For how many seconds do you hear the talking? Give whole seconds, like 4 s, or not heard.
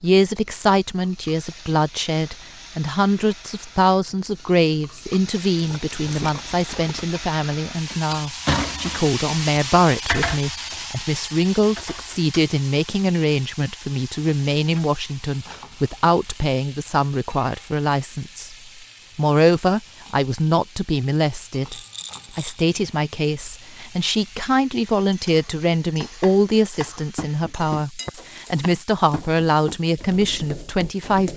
31 s.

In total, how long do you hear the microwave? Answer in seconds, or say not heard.
not heard.